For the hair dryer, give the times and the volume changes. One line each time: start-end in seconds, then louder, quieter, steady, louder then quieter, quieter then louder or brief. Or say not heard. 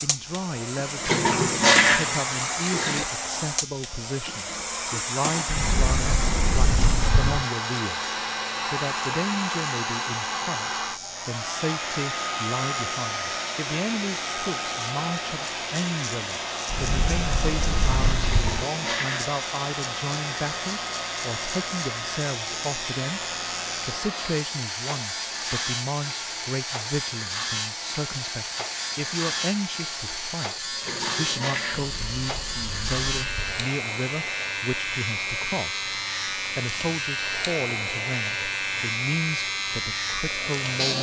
0.0-40.9 quieter.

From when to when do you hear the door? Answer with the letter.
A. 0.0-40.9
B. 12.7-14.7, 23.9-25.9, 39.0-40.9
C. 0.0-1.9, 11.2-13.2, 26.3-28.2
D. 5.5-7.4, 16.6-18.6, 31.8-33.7
D.